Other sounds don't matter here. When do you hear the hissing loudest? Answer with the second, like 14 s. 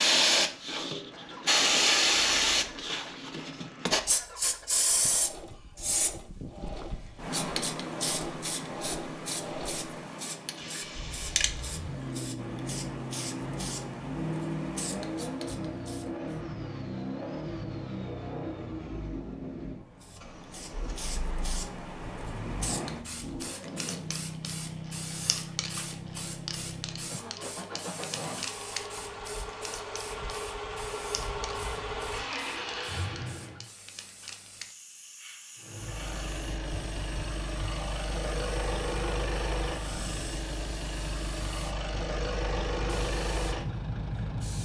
2 s.